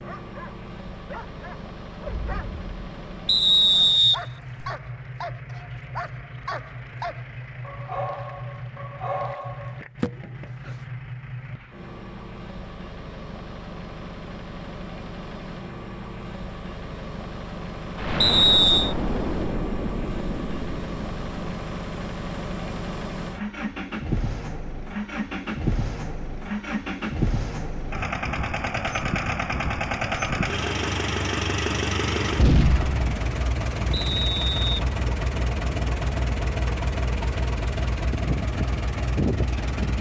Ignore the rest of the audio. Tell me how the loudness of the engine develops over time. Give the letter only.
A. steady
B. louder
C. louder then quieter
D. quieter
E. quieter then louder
B.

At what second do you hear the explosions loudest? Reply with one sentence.
The loudest moment of the explosions is at 33 seconds.